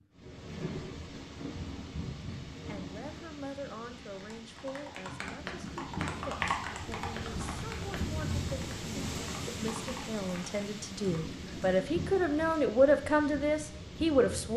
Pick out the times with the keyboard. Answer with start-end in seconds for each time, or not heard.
4.0-11.3.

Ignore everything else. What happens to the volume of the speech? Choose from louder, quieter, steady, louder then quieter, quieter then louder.
louder.